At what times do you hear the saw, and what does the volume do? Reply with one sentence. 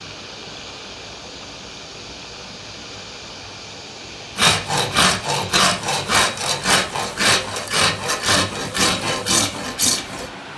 The saw can be heard from 4.3 to 10.3 s, at a steady volume.